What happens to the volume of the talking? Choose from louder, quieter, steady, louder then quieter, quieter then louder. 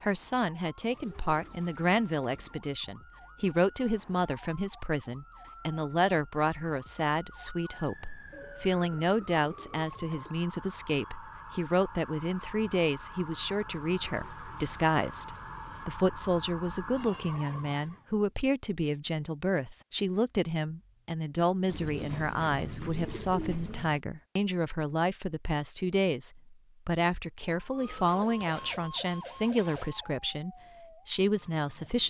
steady.